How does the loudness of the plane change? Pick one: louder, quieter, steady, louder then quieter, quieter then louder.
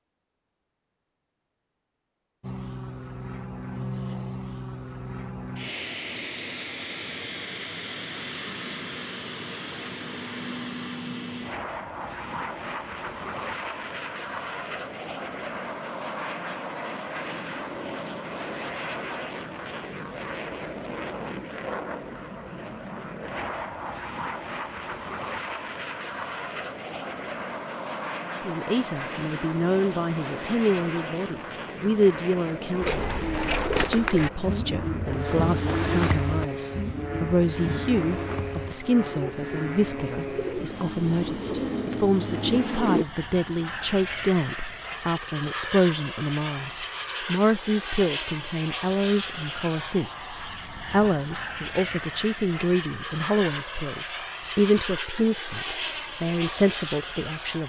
steady.